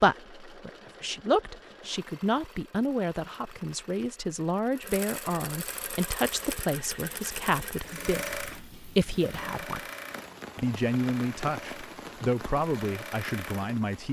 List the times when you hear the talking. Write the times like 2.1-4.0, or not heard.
0.0-9.8, 10.6-14.0.